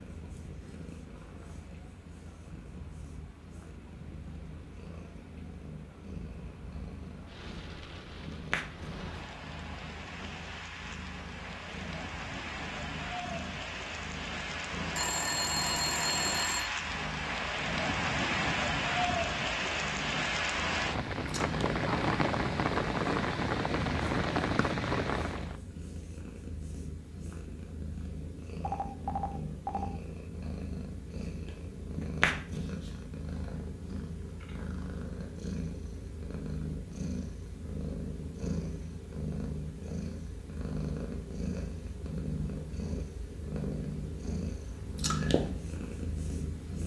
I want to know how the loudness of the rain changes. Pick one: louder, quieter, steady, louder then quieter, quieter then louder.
louder.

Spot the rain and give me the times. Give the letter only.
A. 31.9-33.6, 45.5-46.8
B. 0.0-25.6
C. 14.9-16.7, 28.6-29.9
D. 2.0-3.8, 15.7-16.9
B.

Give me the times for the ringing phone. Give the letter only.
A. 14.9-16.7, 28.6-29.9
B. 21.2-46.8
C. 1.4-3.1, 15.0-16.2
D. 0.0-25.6
A.